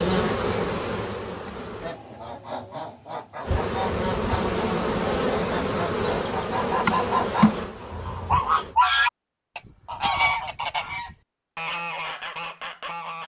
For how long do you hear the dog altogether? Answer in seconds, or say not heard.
not heard.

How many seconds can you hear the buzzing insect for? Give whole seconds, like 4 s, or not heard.
7 s.